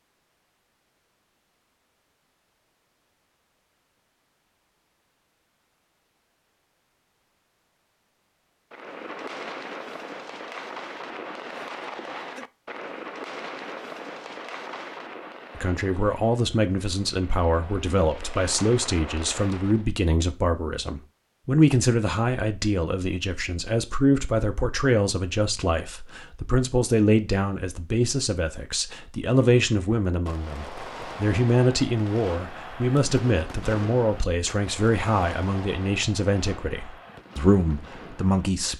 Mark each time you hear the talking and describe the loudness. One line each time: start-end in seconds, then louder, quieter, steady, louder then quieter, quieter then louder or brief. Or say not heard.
15.6-38.7 steady.